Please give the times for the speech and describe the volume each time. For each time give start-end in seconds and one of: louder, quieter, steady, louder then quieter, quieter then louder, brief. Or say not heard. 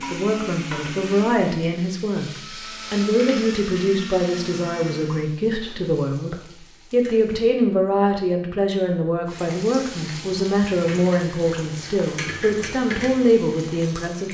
0.0-14.2 steady.